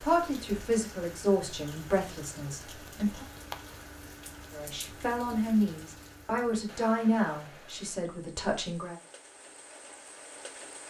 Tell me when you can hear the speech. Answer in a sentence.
The speech can be heard from 0.0 to 3.2 s and from 4.5 to 8.9 s.